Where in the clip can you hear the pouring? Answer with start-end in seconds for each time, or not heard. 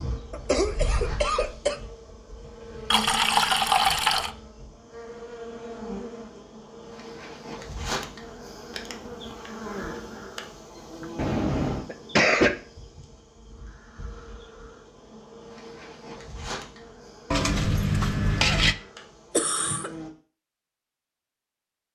2.9-4.3, 11.2-11.8, 17.3-18.8.